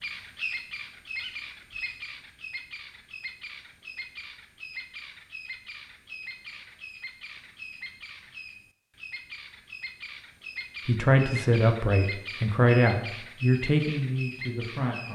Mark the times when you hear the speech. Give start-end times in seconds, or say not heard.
10.8-15.1.